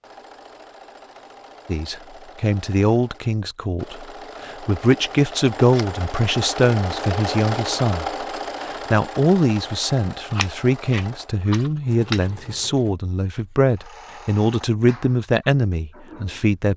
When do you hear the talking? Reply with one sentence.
The talking can be heard from 1.6 to 16.7 s.